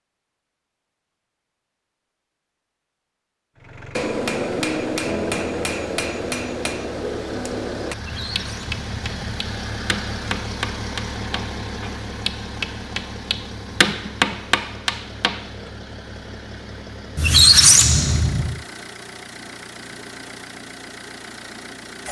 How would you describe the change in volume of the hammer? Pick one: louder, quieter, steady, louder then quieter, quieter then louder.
quieter then louder.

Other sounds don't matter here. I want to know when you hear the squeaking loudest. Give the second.
18 s.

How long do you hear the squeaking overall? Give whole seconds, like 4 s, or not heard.
3 s.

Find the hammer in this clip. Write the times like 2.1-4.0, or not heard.
4.0-15.7.